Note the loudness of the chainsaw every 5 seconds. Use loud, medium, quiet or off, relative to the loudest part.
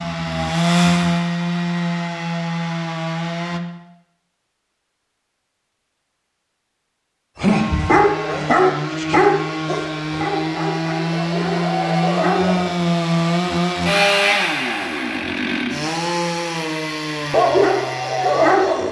loud, medium, loud, medium.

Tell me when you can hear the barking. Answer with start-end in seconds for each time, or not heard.
7.3-12.7, 17.3-18.8.